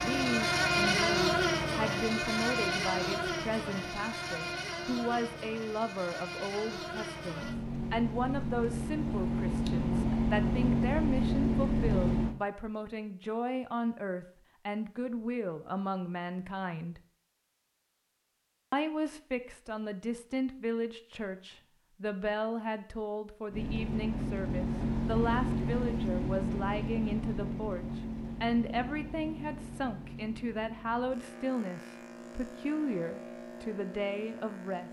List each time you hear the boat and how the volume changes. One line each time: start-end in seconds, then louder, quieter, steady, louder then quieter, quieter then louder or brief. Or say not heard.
0.0-12.3 quieter then louder
23.5-34.8 quieter.